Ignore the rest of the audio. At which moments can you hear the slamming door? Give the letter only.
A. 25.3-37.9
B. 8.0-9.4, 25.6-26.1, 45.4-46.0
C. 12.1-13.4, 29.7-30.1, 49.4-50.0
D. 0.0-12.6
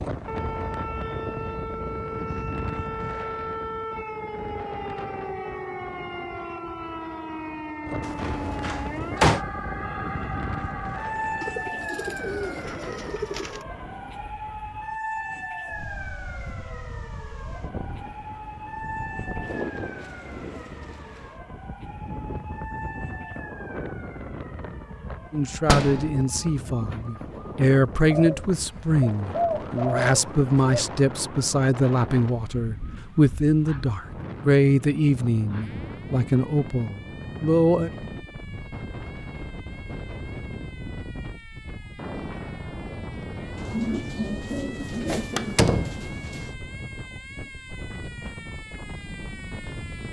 B.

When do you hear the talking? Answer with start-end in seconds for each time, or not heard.
25.3-37.9.